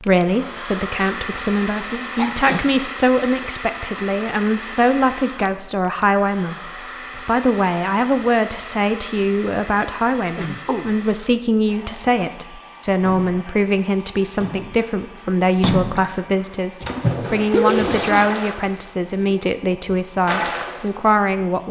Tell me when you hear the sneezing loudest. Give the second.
18 s.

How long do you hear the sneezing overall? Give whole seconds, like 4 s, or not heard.
3 s.